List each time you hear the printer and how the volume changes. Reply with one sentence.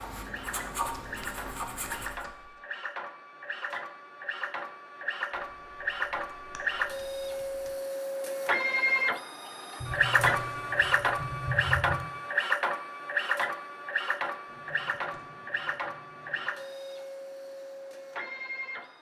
You can hear the printer from 0.1 to 18.9 s, getting louder then quieter.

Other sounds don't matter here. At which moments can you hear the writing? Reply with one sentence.
You can hear the writing from 0.0 to 2.2 s.